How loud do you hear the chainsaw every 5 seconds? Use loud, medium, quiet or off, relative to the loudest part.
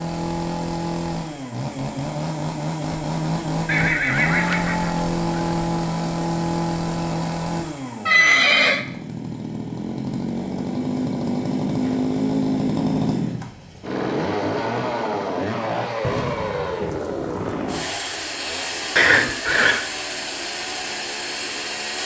loud, loud, loud, loud, medium.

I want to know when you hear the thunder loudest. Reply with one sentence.
The loudest moment of the thunder is at 16 seconds.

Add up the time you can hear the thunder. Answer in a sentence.
The thunder can be heard for 2 seconds in total.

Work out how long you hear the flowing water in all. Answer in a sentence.
You can't hear the flowing water here.